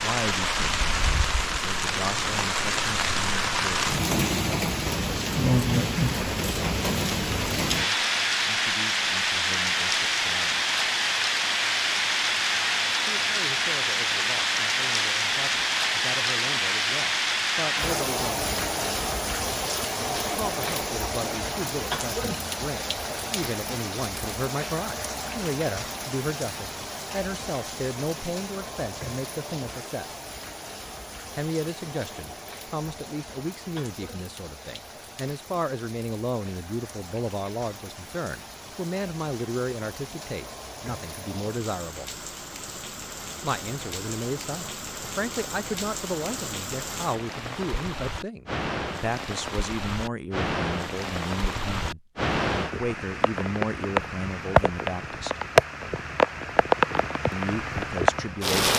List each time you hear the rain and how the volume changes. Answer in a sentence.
You can hear the rain from 0.0 to 58.7 s, getting quieter then louder.